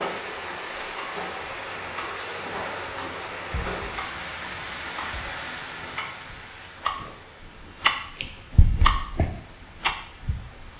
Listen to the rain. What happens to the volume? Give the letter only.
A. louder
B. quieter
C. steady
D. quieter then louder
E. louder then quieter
B.